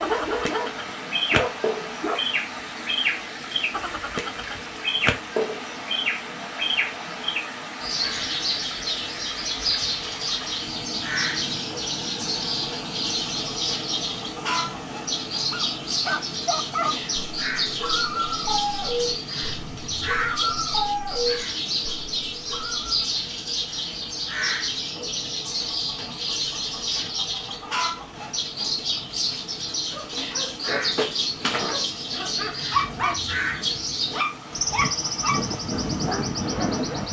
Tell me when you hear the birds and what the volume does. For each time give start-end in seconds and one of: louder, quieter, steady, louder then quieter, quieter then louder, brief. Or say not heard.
0.0-37.0 steady.